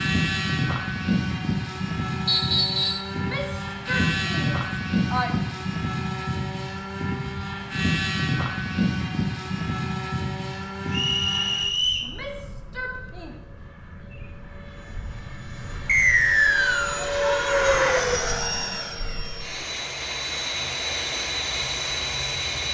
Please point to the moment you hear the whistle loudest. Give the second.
16 s.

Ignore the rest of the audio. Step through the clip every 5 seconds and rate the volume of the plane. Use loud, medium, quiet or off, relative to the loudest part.
loud, loud, medium, loud, loud.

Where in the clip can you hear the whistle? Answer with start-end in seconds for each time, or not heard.
2.2-3.1, 10.9-12.1, 15.8-17.0.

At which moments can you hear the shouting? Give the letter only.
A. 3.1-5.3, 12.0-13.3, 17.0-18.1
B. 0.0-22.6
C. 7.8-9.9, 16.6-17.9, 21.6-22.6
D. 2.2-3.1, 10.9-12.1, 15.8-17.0
A.